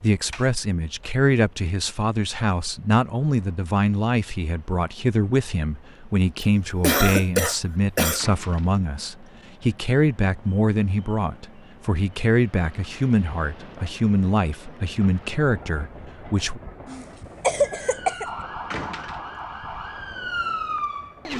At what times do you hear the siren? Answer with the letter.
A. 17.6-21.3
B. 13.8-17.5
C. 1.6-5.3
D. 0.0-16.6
A.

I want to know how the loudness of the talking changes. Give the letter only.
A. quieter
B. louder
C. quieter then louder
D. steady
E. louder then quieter
D.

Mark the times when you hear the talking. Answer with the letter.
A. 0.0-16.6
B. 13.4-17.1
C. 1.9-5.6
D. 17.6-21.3
A.